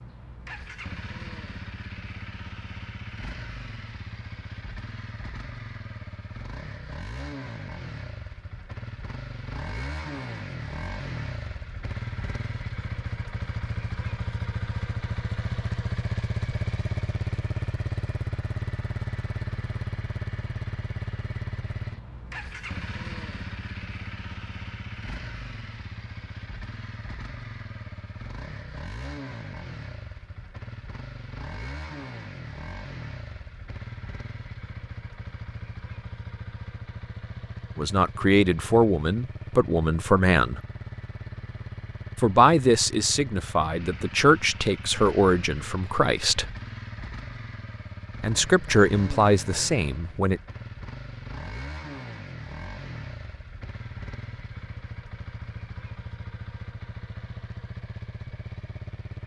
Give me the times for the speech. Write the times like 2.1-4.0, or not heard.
37.8-40.6, 42.1-46.5, 48.2-50.4.